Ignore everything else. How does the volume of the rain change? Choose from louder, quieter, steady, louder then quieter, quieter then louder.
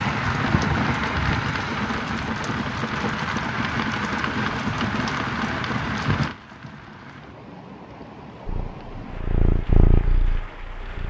quieter.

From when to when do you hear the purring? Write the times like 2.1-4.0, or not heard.
8.4-11.0.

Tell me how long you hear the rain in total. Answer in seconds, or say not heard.
11 s.